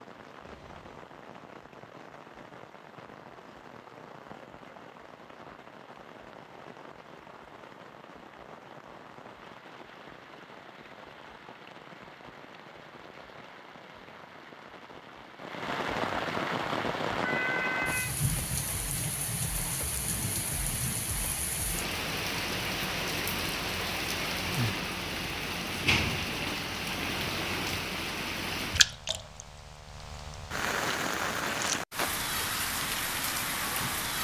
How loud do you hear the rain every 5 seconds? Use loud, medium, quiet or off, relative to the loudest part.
quiet, quiet, quiet, loud, loud, loud, loud.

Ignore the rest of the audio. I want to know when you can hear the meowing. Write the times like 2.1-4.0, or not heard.
0.5-1.1, 17.2-18.1.